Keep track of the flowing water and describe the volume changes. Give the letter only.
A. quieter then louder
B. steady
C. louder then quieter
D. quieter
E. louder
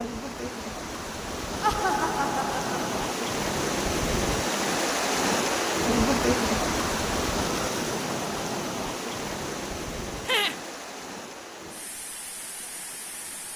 C.